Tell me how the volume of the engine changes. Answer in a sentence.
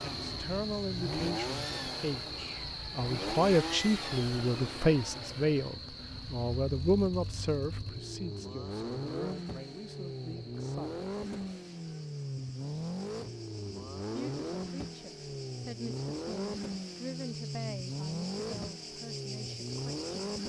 The loudness of the engine goes down, then up.